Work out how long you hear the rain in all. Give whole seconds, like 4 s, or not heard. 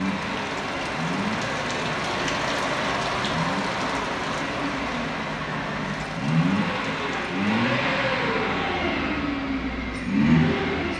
8 s.